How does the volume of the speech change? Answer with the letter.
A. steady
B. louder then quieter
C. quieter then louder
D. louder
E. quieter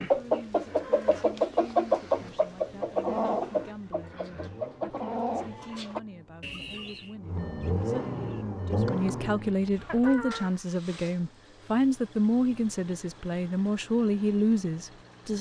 D.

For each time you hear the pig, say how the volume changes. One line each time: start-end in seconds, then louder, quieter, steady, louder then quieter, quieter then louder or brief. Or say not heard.
not heard.